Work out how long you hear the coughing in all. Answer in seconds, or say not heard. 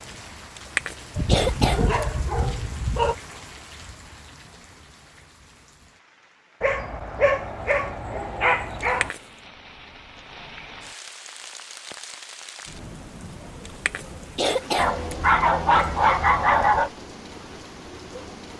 4 s.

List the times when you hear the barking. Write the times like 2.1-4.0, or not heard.
1.1-3.1, 6.6-9.1, 14.8-16.9.